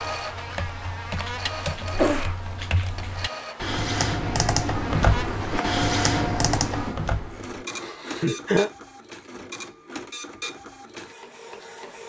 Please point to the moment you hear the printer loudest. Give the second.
6 s.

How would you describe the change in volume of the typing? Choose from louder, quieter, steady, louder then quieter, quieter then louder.
louder.